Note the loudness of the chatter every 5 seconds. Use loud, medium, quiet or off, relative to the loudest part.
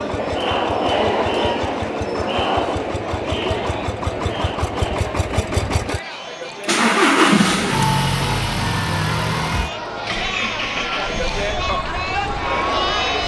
loud, medium, loud.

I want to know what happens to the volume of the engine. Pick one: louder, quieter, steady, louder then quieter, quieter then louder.
louder then quieter.